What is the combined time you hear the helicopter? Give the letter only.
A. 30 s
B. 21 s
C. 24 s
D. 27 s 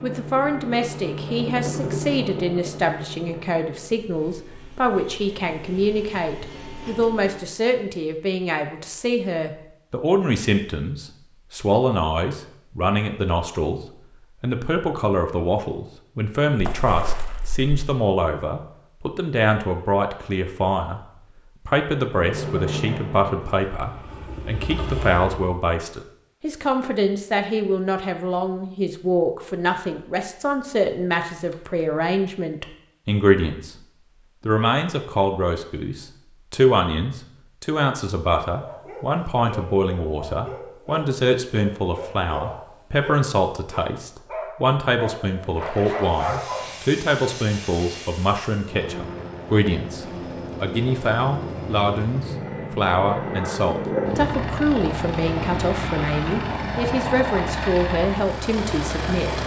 C.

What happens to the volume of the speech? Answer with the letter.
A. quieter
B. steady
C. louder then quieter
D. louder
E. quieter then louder
B.